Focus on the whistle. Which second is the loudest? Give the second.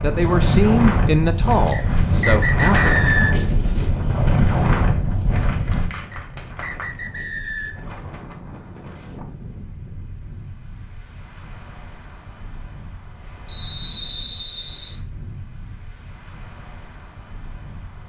3 s.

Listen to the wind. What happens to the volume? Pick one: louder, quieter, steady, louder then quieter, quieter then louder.
quieter.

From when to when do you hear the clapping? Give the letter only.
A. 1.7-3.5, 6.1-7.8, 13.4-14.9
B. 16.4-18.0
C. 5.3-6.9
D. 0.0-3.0
C.